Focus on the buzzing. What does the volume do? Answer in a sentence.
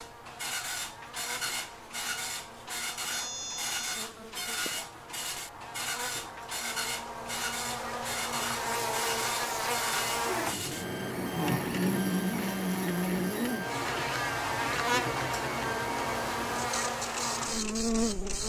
The loudness of the buzzing goes up.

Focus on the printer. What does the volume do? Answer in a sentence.
The volume of the printer stays about the same.